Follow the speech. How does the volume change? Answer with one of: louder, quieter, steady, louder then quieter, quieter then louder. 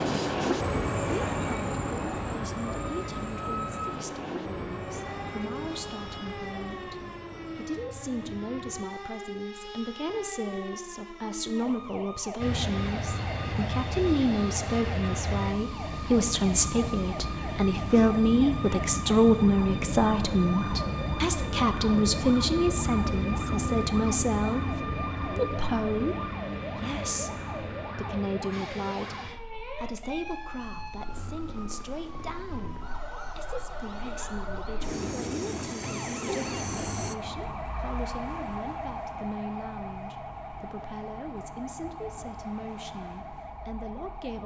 louder then quieter.